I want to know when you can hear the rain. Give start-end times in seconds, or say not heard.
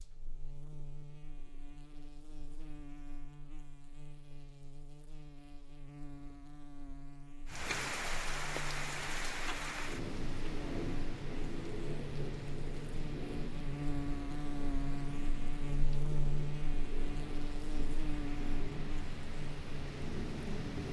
7.5-20.8.